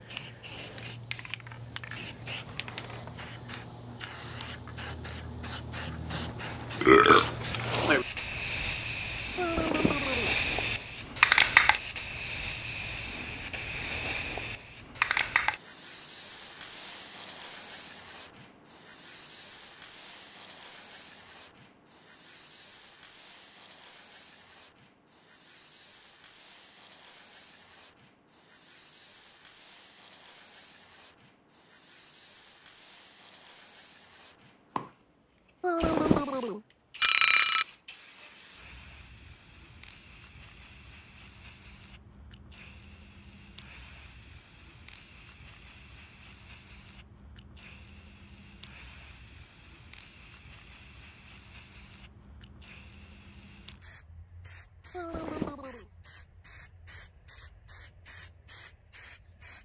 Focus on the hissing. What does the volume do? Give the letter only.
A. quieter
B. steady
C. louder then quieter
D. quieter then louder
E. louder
A.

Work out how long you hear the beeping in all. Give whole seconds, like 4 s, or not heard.
4 s.